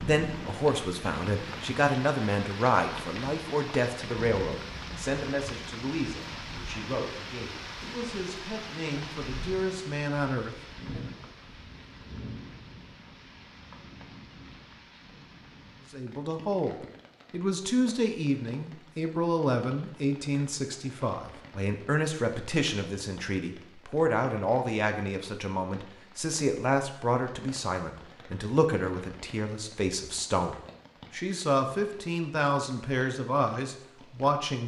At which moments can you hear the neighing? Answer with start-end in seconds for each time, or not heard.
not heard.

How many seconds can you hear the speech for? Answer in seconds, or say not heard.
30 s.